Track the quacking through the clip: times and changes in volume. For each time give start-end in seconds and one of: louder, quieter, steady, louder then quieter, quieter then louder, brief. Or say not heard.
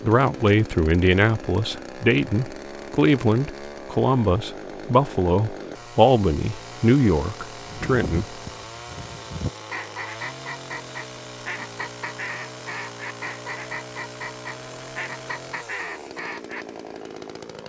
7.6-16.6 steady.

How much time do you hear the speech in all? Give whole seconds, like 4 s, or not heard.
8 s.